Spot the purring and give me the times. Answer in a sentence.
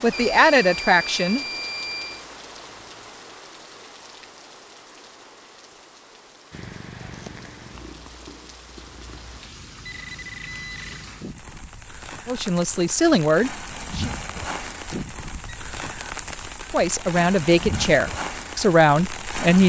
You can hear the purring from 6.5 to 9.4 s.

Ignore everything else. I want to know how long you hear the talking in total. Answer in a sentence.
The talking can be heard for 6 seconds in total.